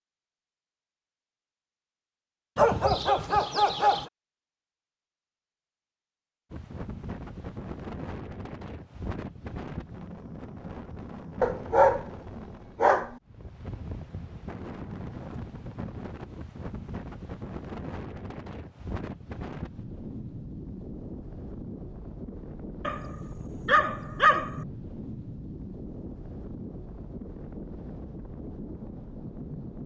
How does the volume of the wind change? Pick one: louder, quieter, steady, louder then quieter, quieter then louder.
steady.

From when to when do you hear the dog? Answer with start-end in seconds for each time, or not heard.
2.5-4.0, 11.4-13.2, 22.9-24.6.